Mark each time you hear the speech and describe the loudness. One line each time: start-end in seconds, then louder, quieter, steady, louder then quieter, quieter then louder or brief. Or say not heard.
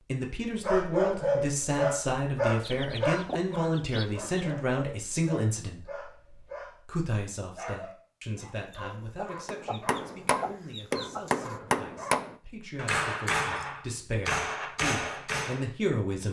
0.0-16.2 quieter then louder.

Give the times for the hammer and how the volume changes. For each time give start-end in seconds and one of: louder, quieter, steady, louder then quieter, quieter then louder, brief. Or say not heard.
9.4-15.7 steady.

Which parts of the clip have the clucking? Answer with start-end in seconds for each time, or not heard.
2.6-4.3, 8.7-11.6.